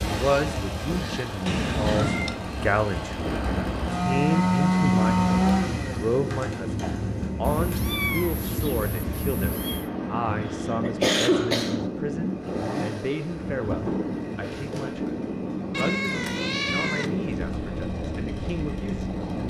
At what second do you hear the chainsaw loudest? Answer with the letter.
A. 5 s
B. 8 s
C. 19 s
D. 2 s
A.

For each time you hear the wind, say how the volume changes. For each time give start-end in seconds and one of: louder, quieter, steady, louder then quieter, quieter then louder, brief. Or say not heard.
0.0-19.4 steady.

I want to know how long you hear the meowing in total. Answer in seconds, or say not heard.
5 s.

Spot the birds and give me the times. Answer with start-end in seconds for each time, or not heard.
not heard.